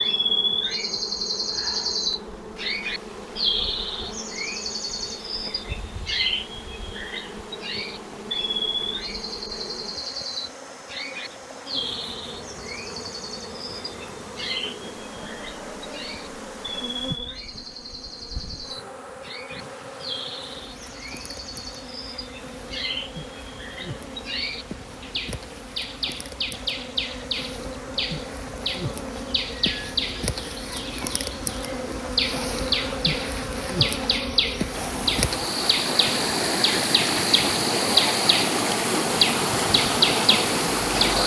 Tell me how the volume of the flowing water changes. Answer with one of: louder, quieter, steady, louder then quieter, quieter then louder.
louder.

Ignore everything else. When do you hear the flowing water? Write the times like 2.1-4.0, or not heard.
0.1-41.2.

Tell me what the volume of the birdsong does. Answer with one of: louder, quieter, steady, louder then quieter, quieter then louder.
quieter then louder.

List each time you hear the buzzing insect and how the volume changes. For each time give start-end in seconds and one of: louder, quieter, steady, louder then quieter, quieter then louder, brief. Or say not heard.
0.0-41.2 louder.